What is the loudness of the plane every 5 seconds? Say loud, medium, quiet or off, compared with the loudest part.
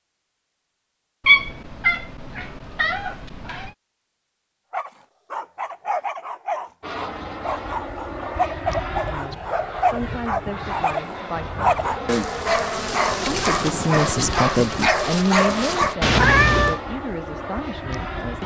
off, loud, loud, loud.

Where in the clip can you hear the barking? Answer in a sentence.
You can hear the barking from 4.7 to 15.9 s.